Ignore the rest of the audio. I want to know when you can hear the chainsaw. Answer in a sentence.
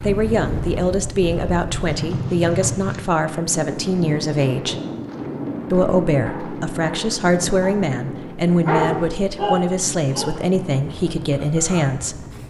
You can't hear the chainsaw here.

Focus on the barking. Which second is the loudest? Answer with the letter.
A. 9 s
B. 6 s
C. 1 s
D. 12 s
A.